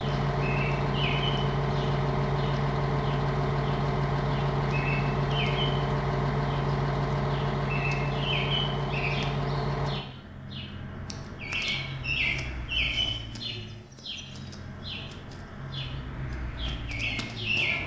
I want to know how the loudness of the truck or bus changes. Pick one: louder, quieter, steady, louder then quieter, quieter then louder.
quieter.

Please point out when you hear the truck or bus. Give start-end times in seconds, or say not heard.
0.0-17.8.